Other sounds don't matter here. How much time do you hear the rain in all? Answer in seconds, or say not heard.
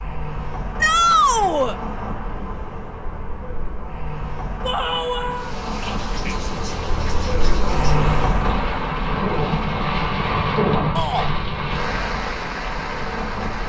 8 s.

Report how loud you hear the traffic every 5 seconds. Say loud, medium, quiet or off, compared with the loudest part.
medium, loud, medium.